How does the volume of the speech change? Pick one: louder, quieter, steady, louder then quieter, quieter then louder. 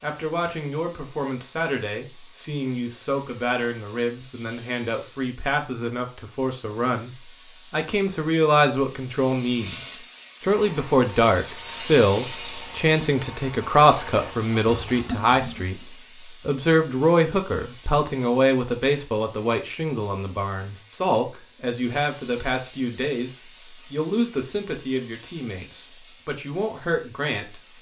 louder then quieter.